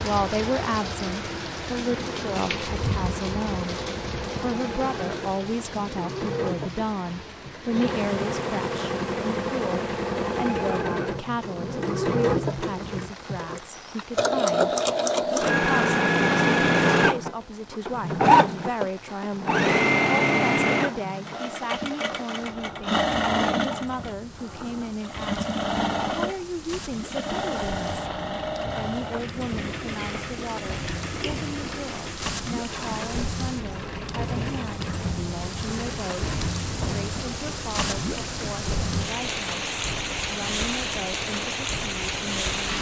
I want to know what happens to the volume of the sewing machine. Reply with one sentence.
The volume of the sewing machine goes up, then down.